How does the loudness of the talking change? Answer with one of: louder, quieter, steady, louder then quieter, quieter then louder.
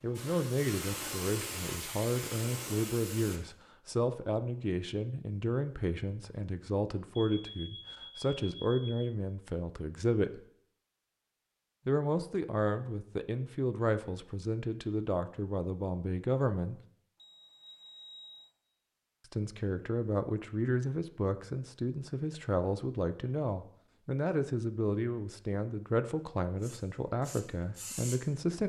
steady.